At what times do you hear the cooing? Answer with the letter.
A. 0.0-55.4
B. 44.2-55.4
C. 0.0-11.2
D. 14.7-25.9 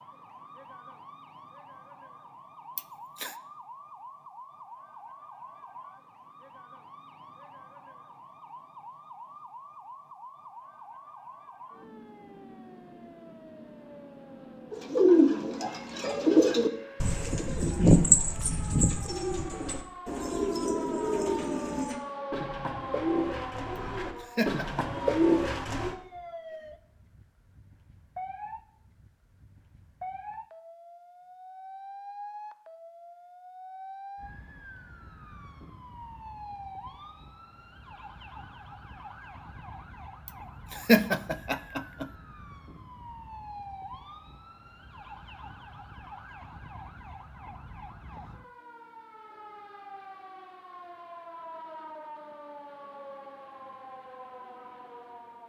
D.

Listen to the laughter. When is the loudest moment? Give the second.
41 s.